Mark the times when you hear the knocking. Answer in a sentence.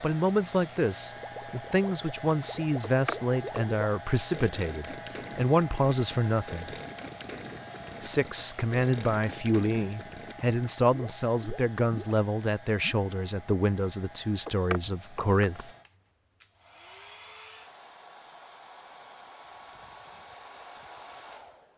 The knocking can be heard from 2.8 to 3.6 s and from 14.4 to 15.6 s.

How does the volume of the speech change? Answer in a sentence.
The loudness of the speech stays about the same.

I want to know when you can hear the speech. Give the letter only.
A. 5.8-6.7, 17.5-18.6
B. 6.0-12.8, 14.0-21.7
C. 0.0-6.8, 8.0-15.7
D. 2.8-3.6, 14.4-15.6
C.